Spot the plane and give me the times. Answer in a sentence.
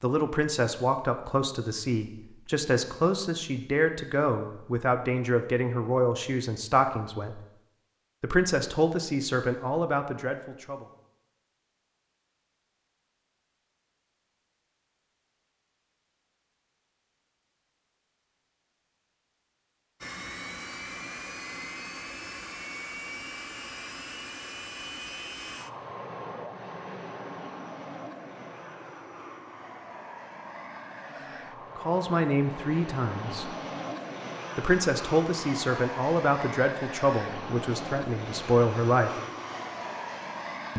You can hear the plane from 20.0 to 40.7 s.